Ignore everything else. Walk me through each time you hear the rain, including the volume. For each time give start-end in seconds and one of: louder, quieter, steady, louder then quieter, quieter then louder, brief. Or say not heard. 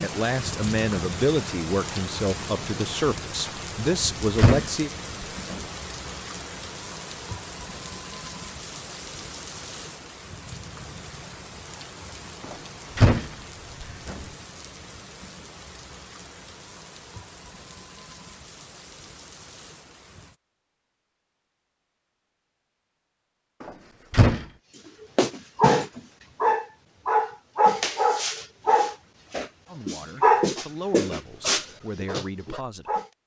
0.0-20.4 quieter.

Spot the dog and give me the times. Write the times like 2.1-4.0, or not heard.
25.1-33.0.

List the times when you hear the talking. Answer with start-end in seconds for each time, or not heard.
0.0-4.9, 29.6-33.0.